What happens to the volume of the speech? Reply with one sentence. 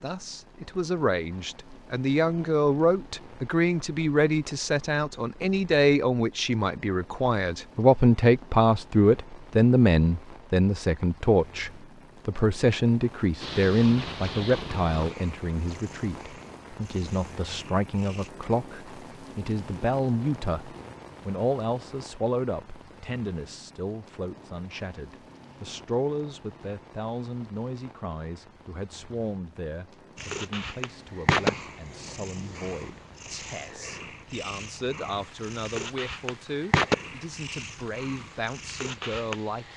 The loudness of the speech goes down.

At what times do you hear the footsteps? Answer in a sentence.
The footsteps can't be heard in this clip.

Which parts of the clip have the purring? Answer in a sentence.
The purring can be heard from 13.4 to 18.3 s and from 30.1 to 39.7 s.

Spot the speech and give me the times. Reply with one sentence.
The speech can be heard from 0.0 to 39.7 s.